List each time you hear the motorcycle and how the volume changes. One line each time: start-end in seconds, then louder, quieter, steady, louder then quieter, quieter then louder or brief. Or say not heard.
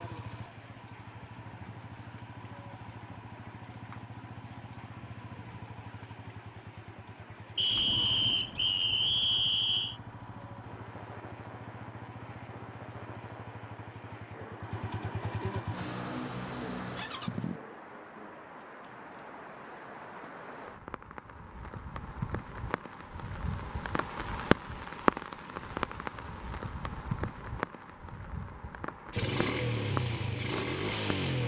0.0-17.6 louder
29.1-31.4 brief.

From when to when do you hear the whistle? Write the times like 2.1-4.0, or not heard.
7.5-9.9.